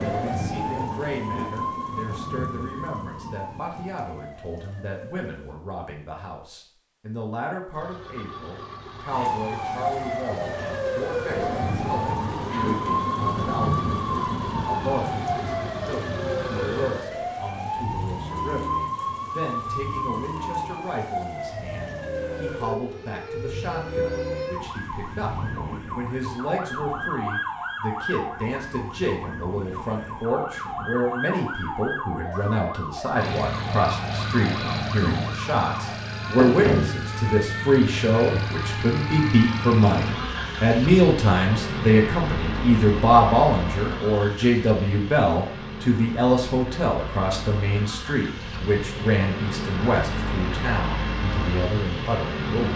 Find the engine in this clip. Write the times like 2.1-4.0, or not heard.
7.7-25.9, 33.1-52.7.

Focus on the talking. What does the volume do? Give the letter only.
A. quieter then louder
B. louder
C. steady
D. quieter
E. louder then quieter
B.